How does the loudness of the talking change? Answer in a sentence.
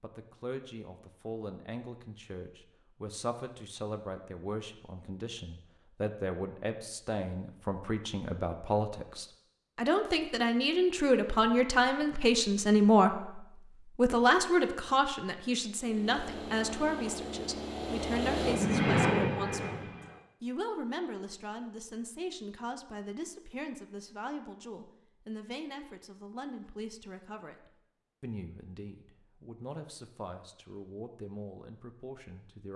The volume of the talking goes up, then down.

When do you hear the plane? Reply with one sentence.
The plane can be heard from 15.8 to 20.2 s.